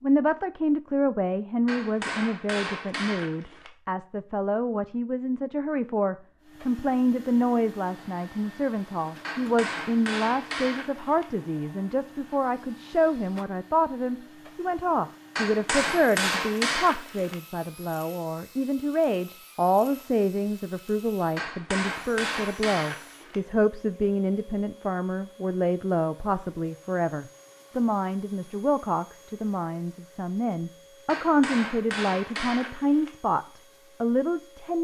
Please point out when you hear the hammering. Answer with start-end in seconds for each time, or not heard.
1.6-3.7, 9.2-11.2, 15.3-17.4, 21.4-23.4, 31.1-33.1.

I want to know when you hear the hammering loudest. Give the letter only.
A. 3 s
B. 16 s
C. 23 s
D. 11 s
B.